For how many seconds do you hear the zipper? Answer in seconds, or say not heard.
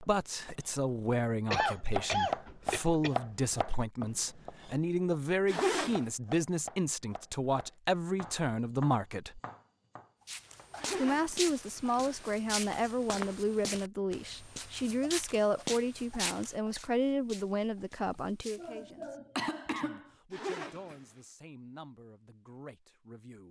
3 s.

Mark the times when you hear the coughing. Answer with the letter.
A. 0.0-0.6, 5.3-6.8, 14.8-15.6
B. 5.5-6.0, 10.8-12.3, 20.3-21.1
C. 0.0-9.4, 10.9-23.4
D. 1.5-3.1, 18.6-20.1
D.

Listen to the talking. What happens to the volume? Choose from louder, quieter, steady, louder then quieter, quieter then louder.
quieter.